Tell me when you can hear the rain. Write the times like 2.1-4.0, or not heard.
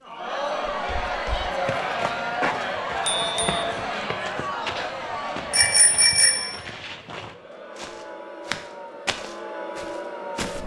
not heard.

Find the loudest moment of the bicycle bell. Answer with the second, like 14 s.
6 s.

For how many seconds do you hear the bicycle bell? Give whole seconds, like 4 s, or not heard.
2 s.